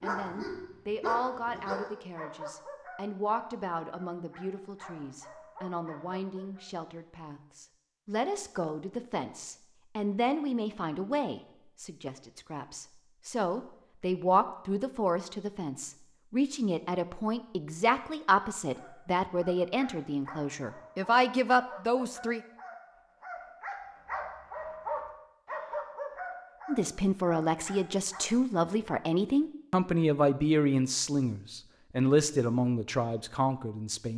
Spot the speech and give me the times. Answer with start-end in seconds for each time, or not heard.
0.0-22.4, 26.6-34.1.